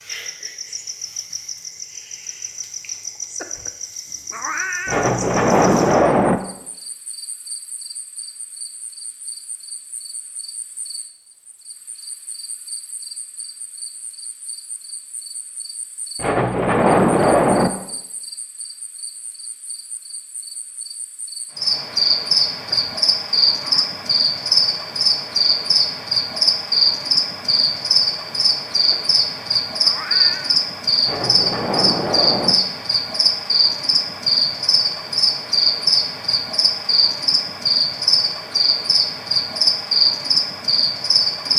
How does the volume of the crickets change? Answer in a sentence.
The volume of the crickets goes down, then up.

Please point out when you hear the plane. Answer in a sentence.
You can't hear the plane here.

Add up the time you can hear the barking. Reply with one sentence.
You can't hear the barking here.